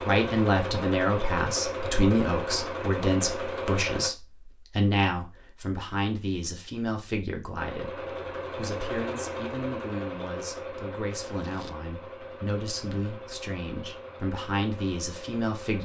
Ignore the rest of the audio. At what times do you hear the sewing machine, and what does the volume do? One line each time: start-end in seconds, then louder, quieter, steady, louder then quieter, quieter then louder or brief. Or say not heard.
0.0-4.1 steady
7.5-15.8 quieter.